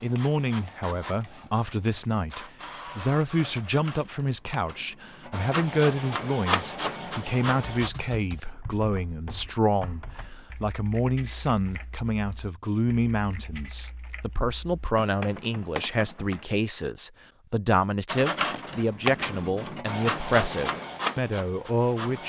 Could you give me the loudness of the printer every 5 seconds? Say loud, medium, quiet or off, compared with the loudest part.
quiet, loud, off, loud, loud.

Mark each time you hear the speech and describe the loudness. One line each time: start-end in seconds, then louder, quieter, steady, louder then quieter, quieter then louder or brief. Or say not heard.
0.0-22.2 steady.